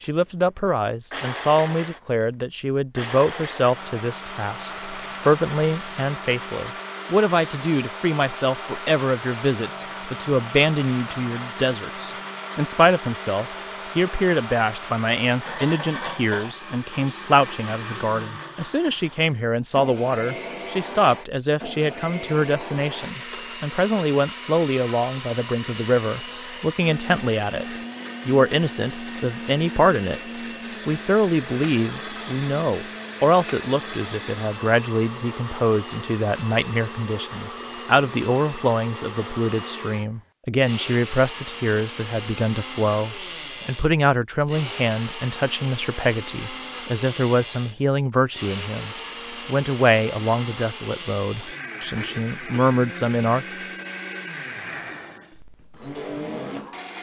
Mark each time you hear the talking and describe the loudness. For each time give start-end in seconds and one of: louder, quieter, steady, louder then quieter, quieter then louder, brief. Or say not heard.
0.0-30.2 steady
30.9-53.5 steady.